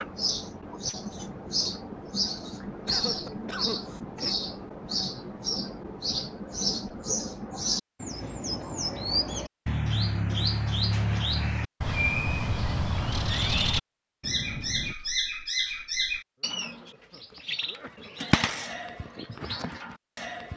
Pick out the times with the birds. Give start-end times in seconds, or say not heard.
0.0-20.5.